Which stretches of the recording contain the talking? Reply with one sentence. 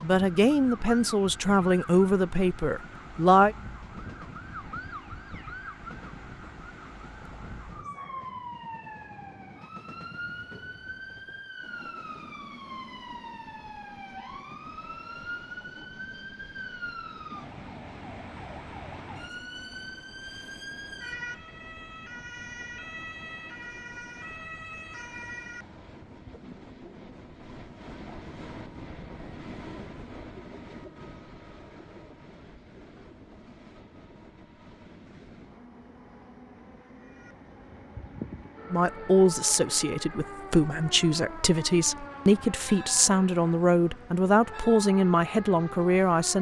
The talking can be heard from 0.0 to 3.5 s and from 38.7 to 46.3 s.